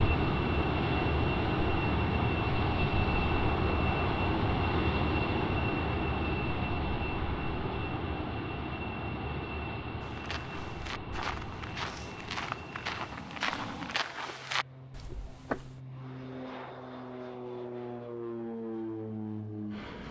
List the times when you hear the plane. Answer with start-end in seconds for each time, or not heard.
0.0-20.0.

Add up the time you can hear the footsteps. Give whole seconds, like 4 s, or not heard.
6 s.